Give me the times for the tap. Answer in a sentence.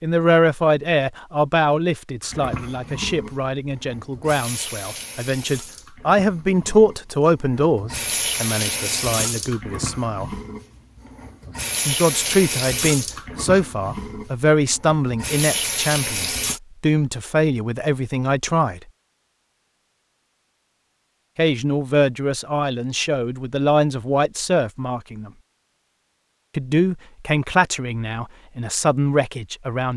You can hear the tap from 2.2 to 16.6 s.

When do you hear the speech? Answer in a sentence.
The speech can be heard from 0.0 to 10.4 s, from 11.8 to 18.8 s, from 21.4 to 25.3 s and from 26.6 to 29.9 s.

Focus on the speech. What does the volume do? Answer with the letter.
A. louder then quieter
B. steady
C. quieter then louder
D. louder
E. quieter
B.